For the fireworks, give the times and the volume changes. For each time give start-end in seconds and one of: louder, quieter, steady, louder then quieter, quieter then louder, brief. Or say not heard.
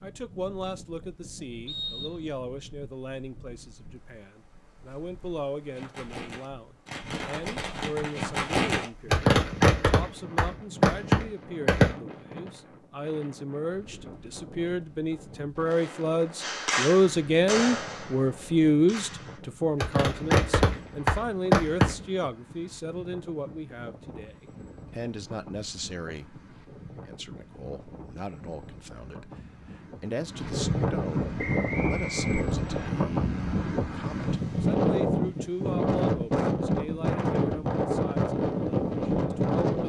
5.7-11.9 louder
16.4-21.9 quieter then louder.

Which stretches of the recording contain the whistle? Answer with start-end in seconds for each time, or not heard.
1.6-2.2, 31.4-32.9.